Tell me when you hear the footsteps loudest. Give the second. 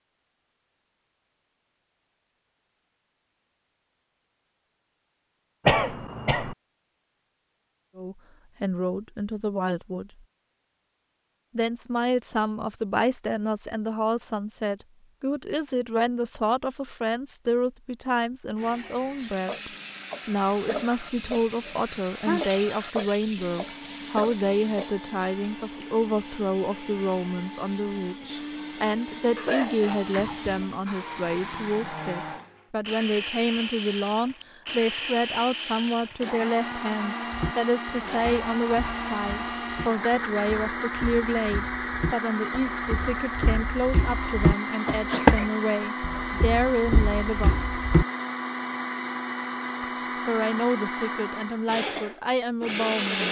45 s.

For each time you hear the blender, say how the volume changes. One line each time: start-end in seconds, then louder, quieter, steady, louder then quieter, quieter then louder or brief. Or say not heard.
18.6-53.2 louder.